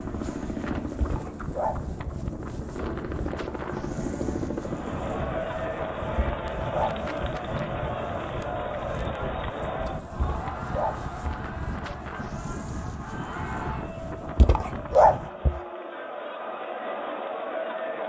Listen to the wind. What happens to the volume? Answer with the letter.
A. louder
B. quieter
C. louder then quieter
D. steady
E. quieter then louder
D.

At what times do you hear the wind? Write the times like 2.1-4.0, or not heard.
0.0-15.3.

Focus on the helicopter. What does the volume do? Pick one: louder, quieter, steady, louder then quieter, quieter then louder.
quieter then louder.